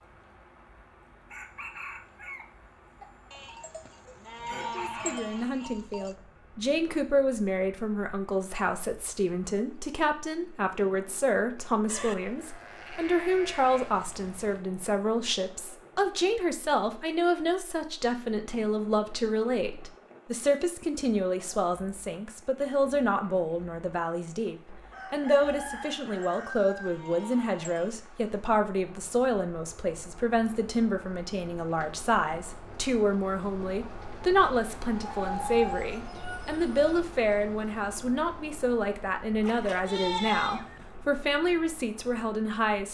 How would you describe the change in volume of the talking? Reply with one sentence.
The volume of the talking stays about the same.